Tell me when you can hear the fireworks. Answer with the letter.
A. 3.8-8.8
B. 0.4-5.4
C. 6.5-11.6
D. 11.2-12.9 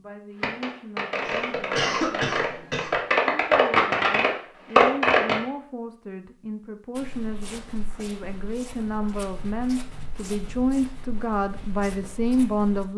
B.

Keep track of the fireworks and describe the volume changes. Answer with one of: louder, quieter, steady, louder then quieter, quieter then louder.
louder.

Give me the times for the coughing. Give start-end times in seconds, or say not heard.
1.2-3.0.